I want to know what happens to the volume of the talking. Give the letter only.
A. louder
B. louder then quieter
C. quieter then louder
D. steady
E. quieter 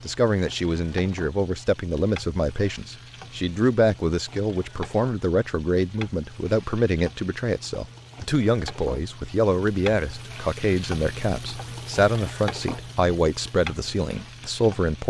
D.